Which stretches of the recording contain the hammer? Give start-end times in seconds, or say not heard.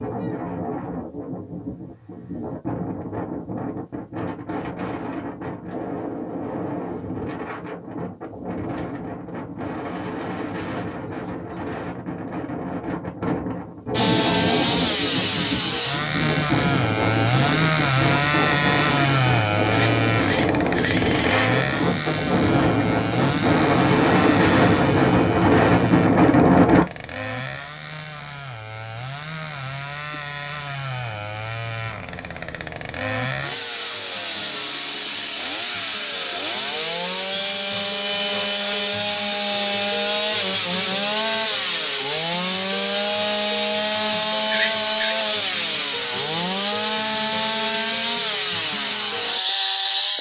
not heard.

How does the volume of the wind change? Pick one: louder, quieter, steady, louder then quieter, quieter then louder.
louder.